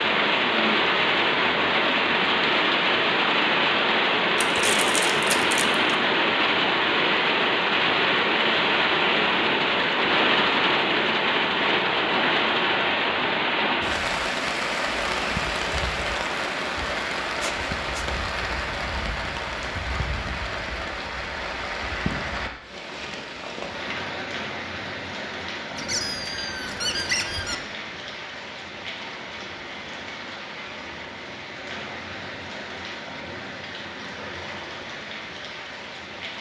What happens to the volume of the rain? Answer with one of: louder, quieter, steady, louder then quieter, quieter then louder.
quieter.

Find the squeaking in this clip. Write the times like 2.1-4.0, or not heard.
4.4-5.8, 17.4-18.1, 25.8-27.6.